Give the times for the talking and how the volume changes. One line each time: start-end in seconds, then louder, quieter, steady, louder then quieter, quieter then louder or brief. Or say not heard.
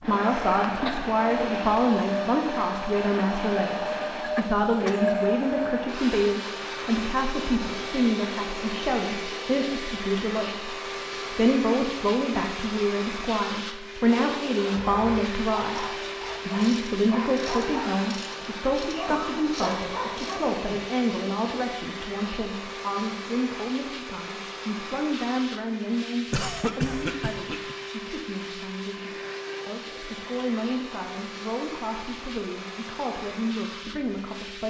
0.0-34.6 quieter.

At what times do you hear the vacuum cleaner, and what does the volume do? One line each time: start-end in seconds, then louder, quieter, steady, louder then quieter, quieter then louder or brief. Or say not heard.
0.0-34.6 quieter.